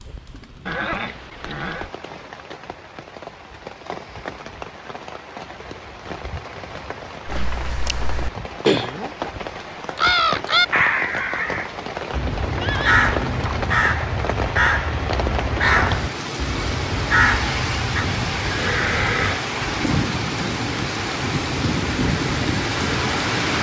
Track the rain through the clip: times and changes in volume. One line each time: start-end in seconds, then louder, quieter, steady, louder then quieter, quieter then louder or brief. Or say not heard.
0.0-23.5 louder.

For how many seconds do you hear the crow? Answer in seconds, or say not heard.
11 s.